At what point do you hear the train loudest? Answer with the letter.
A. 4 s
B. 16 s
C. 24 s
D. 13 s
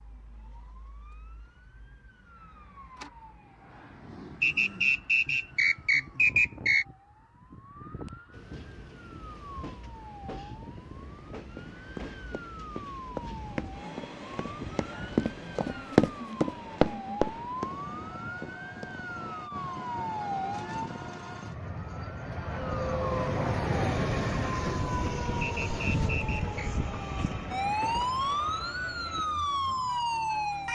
C.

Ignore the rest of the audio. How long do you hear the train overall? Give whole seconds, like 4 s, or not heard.
21 s.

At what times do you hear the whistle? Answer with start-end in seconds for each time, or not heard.
4.4-6.8, 25.4-26.7.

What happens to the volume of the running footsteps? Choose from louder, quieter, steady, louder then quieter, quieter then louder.
louder then quieter.